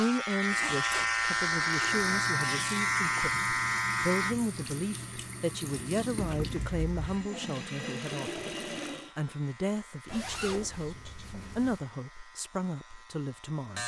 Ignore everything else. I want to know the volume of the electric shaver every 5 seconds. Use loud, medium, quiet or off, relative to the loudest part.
loud, quiet, quiet.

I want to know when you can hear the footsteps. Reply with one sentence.
The footsteps can't be heard in this clip.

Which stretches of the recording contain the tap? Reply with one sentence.
You can hear the tap from 1.6 to 9.1 s.